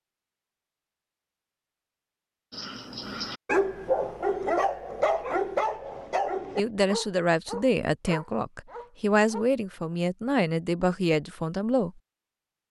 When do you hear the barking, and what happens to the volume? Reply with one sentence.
You can hear the barking from 2.5 to 9.9 s, getting quieter.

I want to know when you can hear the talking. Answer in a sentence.
The talking can be heard from 6.5 to 11.9 s.